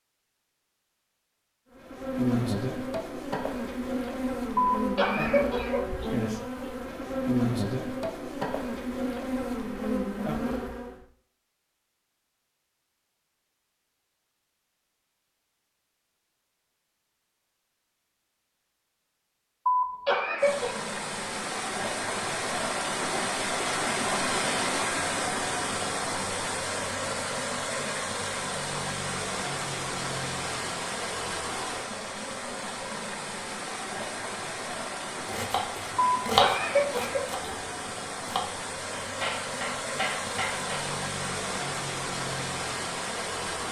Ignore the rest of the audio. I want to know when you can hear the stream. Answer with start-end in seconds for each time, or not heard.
20.4-43.6.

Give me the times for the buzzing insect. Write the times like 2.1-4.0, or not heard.
1.8-11.1.